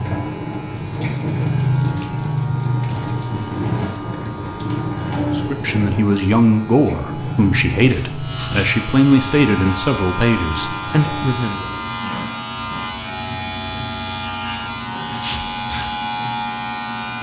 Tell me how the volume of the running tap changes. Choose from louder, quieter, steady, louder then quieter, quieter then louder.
quieter.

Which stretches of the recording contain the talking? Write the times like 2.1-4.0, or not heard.
5.3-11.7.